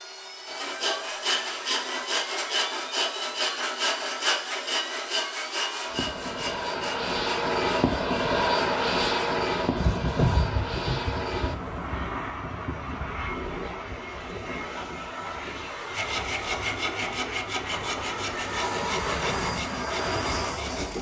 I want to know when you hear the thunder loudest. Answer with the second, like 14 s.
10 s.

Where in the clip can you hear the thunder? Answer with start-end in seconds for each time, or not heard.
9.6-13.4.